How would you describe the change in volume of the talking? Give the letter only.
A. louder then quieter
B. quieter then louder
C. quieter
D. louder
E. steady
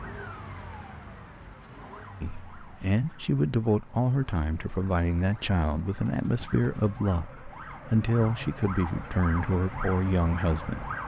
E.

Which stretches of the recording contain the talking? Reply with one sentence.
You can hear the talking from 2.2 to 10.9 s.